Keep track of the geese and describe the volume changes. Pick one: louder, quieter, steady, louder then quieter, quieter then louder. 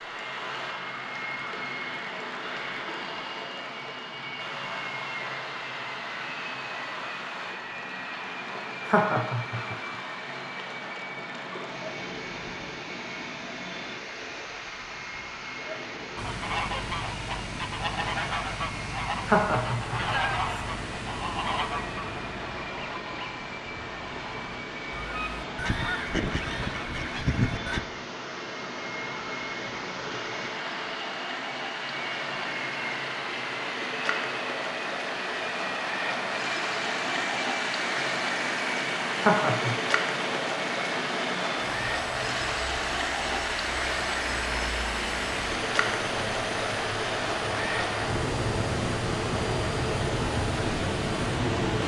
quieter then louder.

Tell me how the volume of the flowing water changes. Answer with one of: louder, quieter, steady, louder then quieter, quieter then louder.
louder.